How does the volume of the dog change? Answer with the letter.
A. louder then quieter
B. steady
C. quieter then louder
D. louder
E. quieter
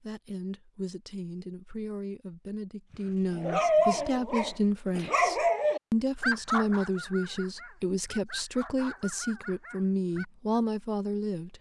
E.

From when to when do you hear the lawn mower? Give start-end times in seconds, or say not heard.
not heard.